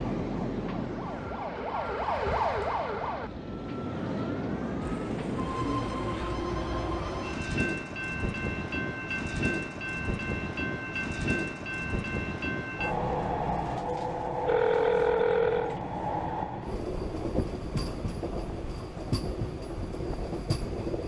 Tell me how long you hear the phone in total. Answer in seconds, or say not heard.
3 s.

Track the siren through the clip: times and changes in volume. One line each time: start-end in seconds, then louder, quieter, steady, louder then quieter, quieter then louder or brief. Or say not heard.
0.1-5.1 louder then quieter.